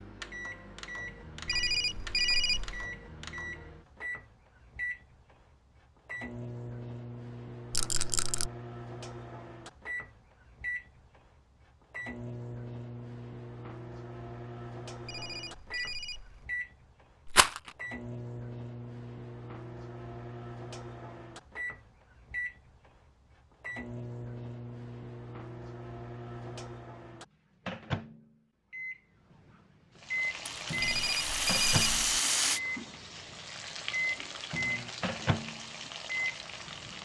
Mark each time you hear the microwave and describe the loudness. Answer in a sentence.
The microwave can be heard from 0.0 to 37.0 s, getting louder.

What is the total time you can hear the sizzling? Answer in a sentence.
You can hear the sizzling for 7 seconds altogether.